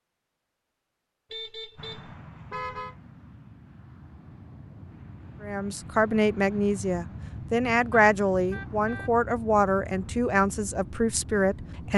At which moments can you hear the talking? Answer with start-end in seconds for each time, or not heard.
5.4-11.9.